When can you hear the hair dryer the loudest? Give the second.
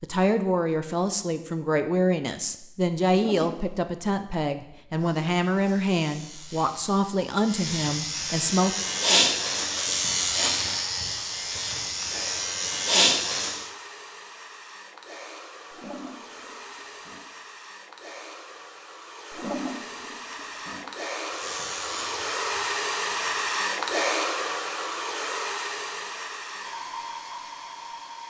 24 s.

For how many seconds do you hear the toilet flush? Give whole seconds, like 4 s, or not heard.
4 s.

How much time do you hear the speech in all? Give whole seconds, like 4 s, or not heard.
9 s.